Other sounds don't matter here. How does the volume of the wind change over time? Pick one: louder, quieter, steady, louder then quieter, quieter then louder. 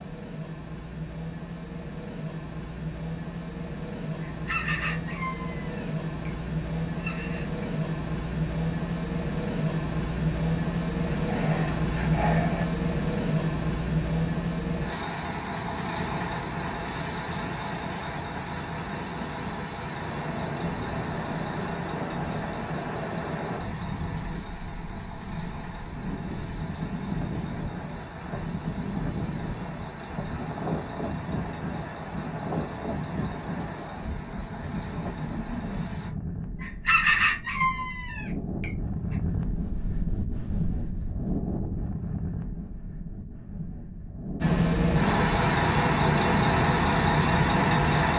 steady.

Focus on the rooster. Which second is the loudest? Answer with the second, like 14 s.
37 s.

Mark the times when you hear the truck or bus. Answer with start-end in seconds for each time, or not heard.
0.0-36.1, 44.4-48.1.